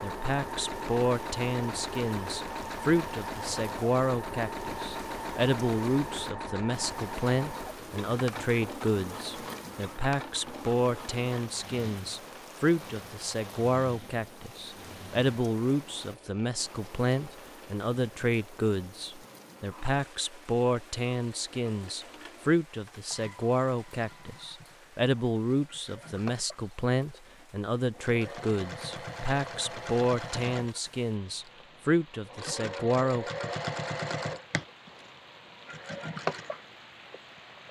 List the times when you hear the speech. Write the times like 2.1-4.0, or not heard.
0.0-33.2.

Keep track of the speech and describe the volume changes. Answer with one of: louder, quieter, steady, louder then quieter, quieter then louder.
steady.